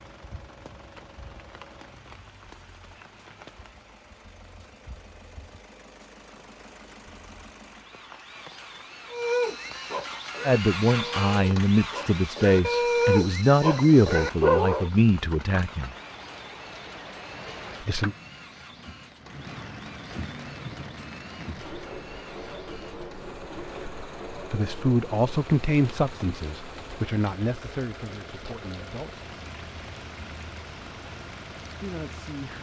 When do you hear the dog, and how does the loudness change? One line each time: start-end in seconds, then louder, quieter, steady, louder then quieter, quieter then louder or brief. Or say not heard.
9.1-14.9 louder.